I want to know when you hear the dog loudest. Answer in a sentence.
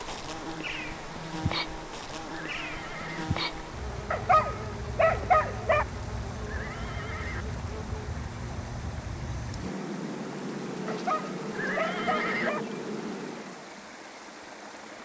The volume of the dog peaks at 5 seconds.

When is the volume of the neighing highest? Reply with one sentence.
The volume of the neighing peaks at 12 seconds.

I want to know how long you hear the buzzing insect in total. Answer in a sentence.
You can hear the buzzing insect for 14 seconds altogether.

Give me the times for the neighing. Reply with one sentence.
The neighing can be heard from 2.3 to 3.2 s, from 6.4 to 7.5 s and from 11.5 to 12.5 s.